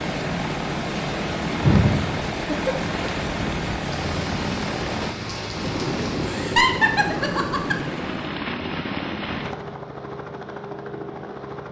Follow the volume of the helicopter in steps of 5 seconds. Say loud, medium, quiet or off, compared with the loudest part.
loud, loud, medium.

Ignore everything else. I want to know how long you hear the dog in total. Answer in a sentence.
The dog can't be heard in this clip.